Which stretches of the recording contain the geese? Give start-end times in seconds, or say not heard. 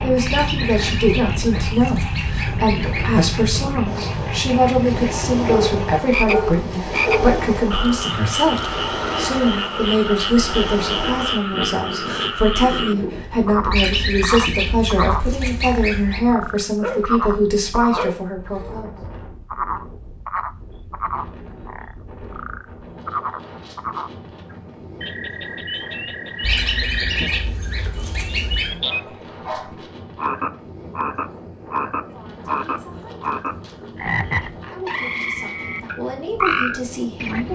0.2-3.1, 13.7-16.2, 26.4-28.8.